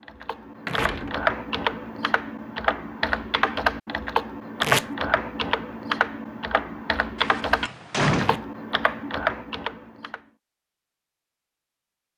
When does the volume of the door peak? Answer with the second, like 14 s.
8 s.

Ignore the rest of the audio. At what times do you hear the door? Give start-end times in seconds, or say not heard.
0.7-1.1, 7.2-8.4.